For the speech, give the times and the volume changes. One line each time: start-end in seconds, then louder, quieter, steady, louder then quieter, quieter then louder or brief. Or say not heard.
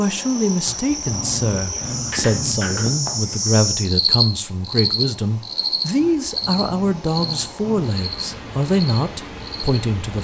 0.0-10.1 steady.